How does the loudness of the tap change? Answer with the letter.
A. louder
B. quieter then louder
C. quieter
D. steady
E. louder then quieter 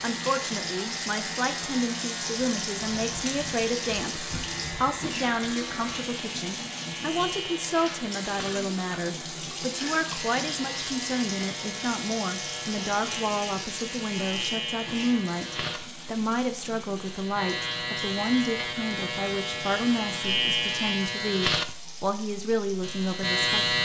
C.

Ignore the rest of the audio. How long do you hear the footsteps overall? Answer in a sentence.
You can't hear the footsteps here.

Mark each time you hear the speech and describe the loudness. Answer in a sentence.
The speech can be heard from 0.0 to 23.8 s, at a steady volume.